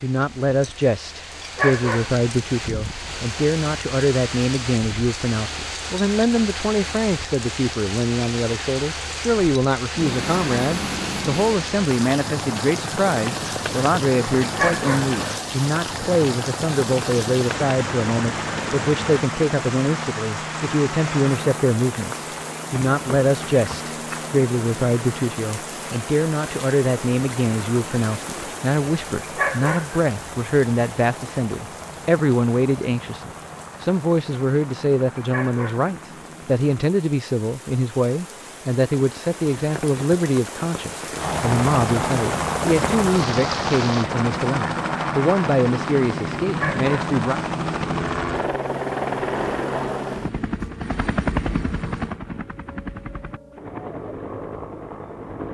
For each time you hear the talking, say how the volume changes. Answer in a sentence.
You can hear the talking from 0.0 to 47.4 s, at a steady volume.